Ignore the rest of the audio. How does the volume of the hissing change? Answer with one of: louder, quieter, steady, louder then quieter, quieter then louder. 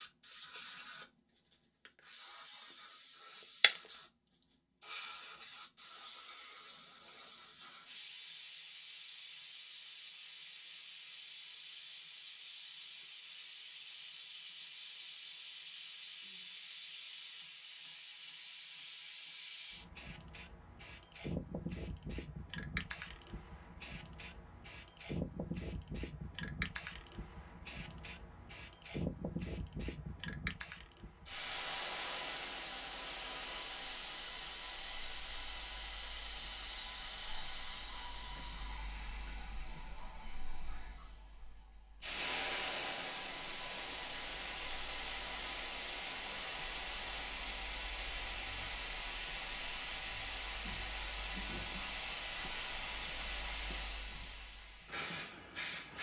louder.